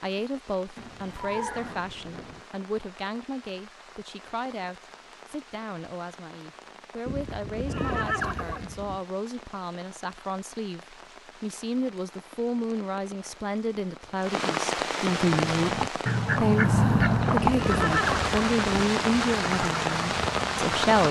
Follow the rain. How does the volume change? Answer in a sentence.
The volume of the rain goes up.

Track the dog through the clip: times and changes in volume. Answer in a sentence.
The dog can't be heard in this clip.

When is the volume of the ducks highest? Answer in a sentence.
The loudest moment of the ducks is at 17 seconds.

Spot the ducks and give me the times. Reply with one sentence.
The ducks can be heard from 15.3 to 21.0 s.